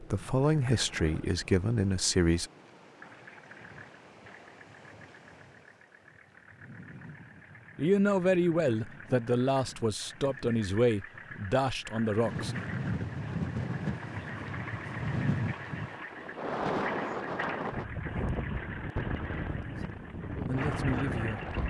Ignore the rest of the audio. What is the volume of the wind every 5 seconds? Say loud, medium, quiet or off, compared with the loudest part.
quiet, quiet, loud, loud, loud.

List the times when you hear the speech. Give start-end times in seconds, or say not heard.
0.0-2.5, 7.8-12.6, 20.4-21.6.